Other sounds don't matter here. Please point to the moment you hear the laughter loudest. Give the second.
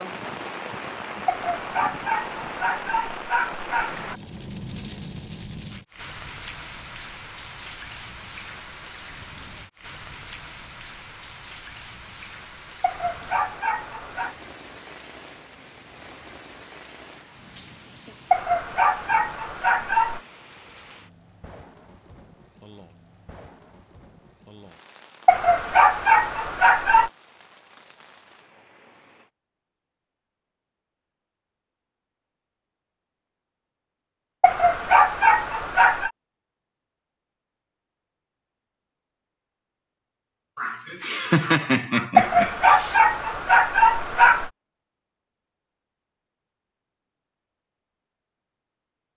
41 s.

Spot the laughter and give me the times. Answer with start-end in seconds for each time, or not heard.
40.5-43.0.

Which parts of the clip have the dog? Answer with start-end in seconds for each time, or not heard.
1.2-4.2, 12.8-14.3, 18.3-20.2, 25.2-27.1, 34.4-36.1, 42.1-44.5.